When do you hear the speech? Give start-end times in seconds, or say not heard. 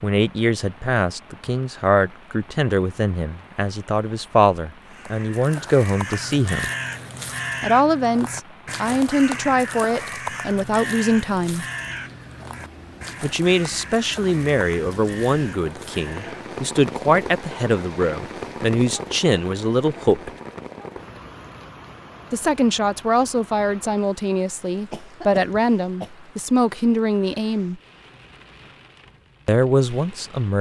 0.0-6.7, 7.6-11.7, 13.2-20.3, 22.3-27.8, 29.4-30.5.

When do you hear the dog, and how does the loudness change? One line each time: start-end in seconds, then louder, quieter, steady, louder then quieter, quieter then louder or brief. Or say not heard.
not heard.